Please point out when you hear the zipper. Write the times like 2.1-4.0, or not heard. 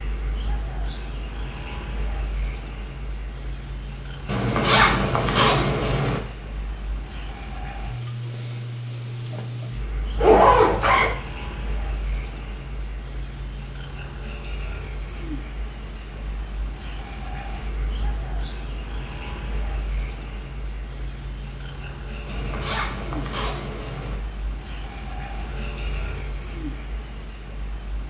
4.2-6.2, 10.2-11.1, 22.2-24.1.